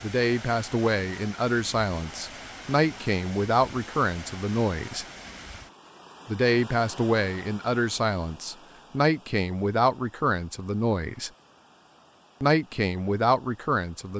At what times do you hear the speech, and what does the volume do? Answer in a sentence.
You can hear the speech from 0.0 to 5.0 s, at a steady volume; from 6.2 to 11.3 s, at a steady volume; and briefly from 12.4 to 14.1 s.